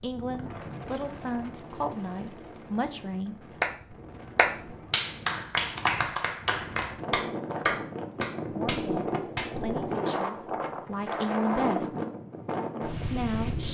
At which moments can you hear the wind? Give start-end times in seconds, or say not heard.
0.0-13.7.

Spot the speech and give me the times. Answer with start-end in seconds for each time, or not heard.
0.0-3.4, 8.5-11.9, 13.1-13.7.